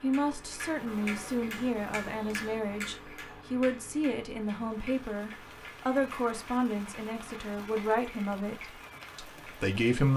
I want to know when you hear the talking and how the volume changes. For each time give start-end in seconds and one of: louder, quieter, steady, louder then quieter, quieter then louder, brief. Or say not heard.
0.0-10.1 steady.